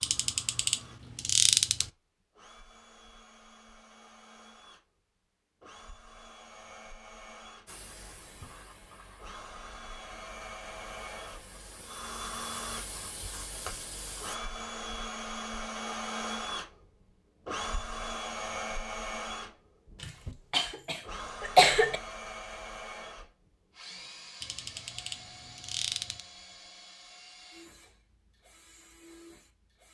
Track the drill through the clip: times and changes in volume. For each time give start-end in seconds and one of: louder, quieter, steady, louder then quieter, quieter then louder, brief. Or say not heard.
0.0-29.9 louder then quieter.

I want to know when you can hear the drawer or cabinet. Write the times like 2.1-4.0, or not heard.
not heard.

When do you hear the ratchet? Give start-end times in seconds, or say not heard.
0.0-1.9, 24.4-26.2.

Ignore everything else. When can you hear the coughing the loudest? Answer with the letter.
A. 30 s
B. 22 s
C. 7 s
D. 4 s
B.